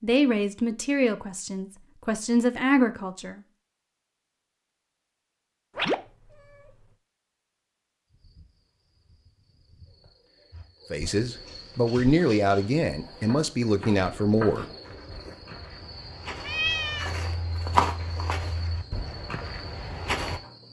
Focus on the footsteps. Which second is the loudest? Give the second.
18 s.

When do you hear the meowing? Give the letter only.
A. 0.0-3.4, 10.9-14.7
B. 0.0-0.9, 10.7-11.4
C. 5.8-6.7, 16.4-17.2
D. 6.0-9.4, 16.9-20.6
C.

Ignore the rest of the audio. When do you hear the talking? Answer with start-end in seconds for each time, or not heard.
0.0-3.4, 10.9-14.7.